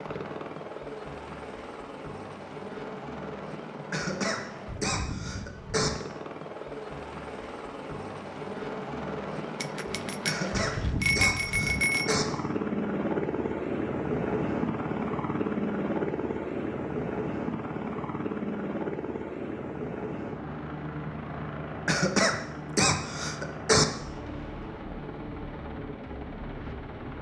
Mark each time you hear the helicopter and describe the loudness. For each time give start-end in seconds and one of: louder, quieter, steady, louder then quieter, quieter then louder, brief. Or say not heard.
0.0-27.1 louder then quieter.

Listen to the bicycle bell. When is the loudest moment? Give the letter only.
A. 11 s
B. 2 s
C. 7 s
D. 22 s
A.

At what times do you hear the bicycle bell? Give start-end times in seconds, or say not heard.
9.6-12.2.